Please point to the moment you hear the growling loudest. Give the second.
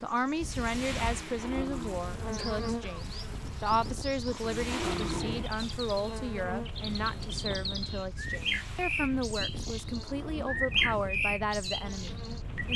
5 s.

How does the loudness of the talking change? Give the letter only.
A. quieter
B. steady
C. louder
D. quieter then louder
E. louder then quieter
B.